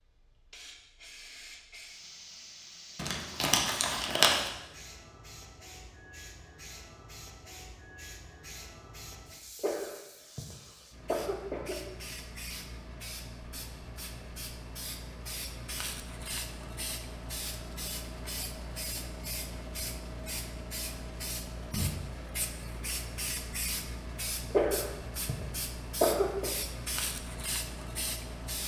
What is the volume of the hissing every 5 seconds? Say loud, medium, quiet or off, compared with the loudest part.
medium, medium, medium, loud, loud, loud.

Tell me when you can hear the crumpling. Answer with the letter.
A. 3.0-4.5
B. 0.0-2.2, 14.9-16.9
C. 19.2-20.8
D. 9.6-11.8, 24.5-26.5
A.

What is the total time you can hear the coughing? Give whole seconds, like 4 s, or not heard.
4 s.